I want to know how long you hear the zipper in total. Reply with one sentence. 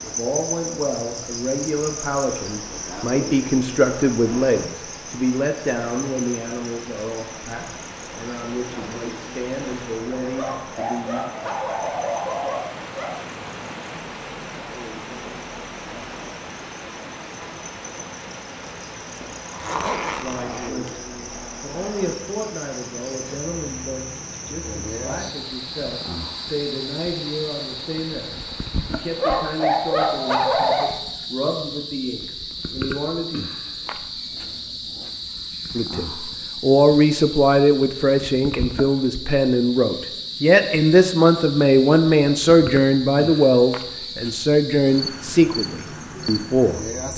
The zipper can be heard for 2 seconds in total.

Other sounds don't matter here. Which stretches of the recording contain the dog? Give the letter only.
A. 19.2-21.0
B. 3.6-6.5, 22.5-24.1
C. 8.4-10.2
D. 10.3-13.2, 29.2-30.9
D.